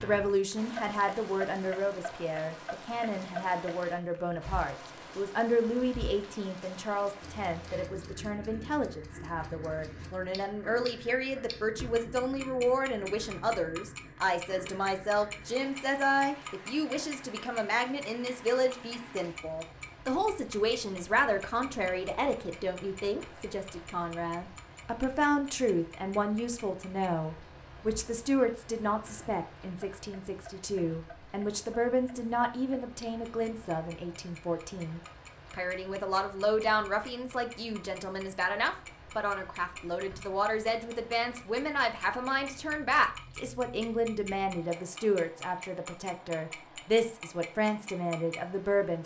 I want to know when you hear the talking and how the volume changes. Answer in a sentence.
You can hear the talking from 0.0 to 49.0 s, at a steady volume.